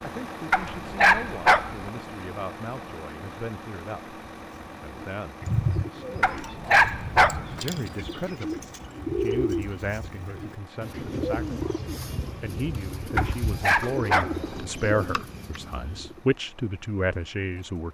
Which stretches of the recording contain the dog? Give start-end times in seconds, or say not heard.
0.5-1.9, 6.2-7.6, 13.2-14.6.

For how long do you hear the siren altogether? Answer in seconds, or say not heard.
not heard.